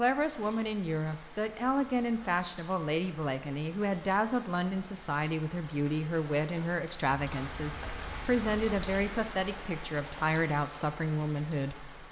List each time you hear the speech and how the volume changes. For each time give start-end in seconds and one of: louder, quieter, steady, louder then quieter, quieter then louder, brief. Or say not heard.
0.0-12.0 steady.